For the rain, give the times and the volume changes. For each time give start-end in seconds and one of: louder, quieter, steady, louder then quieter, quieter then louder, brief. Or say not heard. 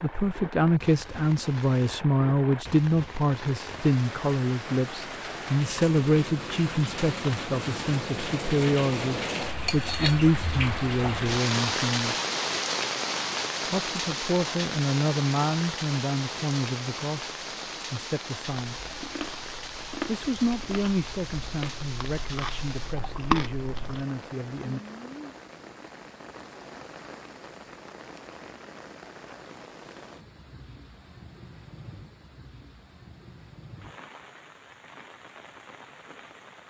0.0-36.6 louder then quieter.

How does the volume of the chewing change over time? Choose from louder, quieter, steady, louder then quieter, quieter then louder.
quieter then louder.